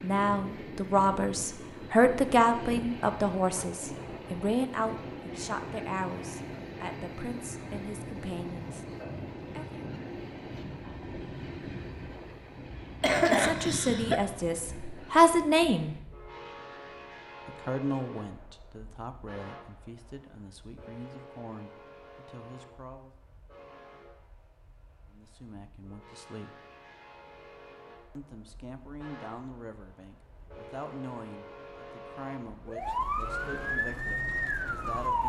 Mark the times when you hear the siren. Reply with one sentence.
The siren can be heard from 32.6 to 35.2 s.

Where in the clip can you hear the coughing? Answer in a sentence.
You can hear the coughing from 13.0 to 14.2 s.